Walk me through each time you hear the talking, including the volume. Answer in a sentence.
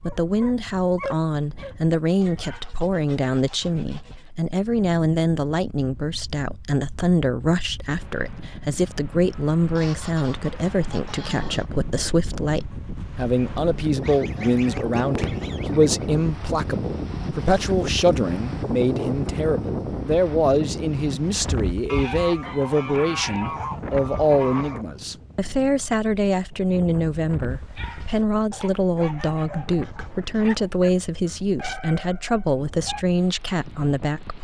You can hear the talking from 0.0 to 34.3 s, at a steady volume.